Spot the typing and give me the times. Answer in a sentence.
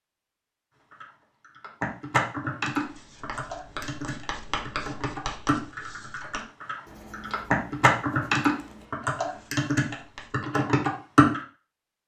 You can hear the typing from 0.9 to 11.4 s.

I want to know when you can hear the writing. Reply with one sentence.
You can hear the writing from 2.7 to 10.5 s.